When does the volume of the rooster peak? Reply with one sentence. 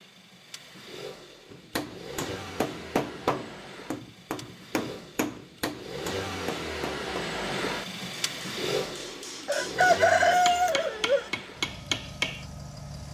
The loudest moment of the rooster is at 10 seconds.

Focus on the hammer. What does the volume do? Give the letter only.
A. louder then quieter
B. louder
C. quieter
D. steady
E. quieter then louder
E.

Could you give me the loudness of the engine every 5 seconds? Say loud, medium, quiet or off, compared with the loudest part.
medium, loud, medium.